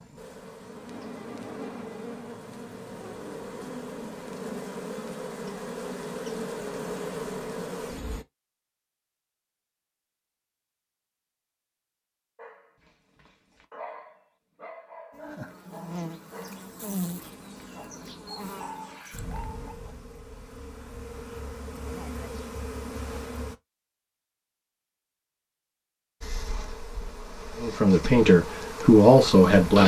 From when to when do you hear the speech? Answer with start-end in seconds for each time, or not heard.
27.6-29.8.